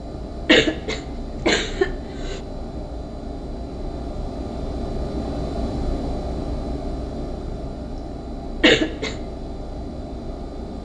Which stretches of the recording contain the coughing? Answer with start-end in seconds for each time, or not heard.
0.5-2.4, 8.6-9.2.